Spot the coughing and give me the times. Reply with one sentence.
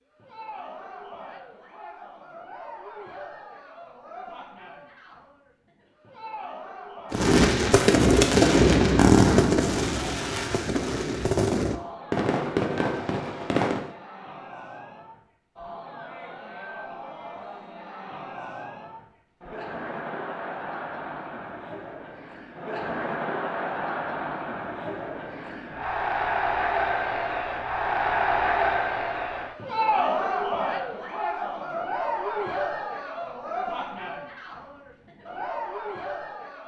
The coughing can't be heard in this clip.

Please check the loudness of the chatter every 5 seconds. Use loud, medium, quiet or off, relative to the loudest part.
quiet, quiet, quiet, quiet, medium, loud, loud, medium.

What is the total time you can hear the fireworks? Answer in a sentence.
You can hear the fireworks for 7 seconds altogether.